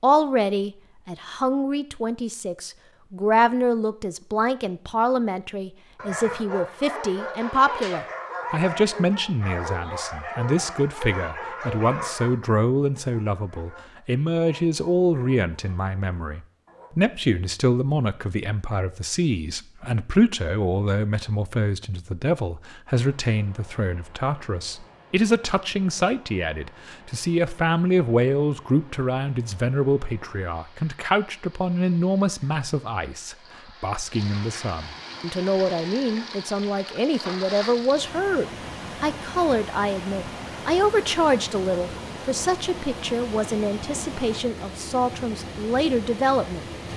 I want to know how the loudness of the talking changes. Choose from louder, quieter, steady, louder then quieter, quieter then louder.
steady.